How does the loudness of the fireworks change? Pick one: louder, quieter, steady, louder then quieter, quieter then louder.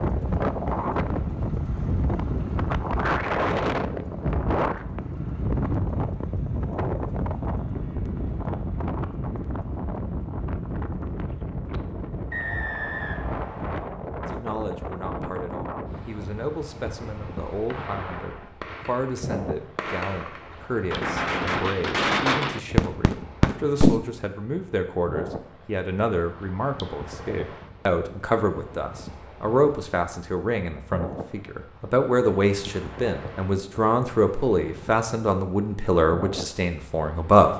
louder.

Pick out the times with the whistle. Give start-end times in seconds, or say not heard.
12.3-13.9.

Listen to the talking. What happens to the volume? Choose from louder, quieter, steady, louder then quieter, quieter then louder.
louder.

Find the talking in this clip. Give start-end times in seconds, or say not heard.
14.2-37.5.